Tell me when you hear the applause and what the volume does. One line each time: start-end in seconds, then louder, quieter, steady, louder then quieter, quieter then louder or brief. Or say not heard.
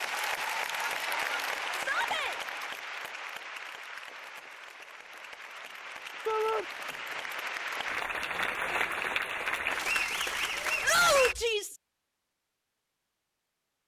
0.0-11.3 quieter then louder.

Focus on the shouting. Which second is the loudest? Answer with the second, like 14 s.
11 s.